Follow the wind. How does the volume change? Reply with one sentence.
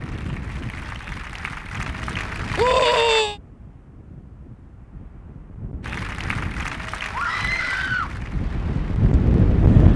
The loudness of the wind goes down, then up.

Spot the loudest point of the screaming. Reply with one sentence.
The loudest moment of the screaming is at 3 seconds.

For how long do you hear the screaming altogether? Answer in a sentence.
You can hear the screaming for 2 seconds altogether.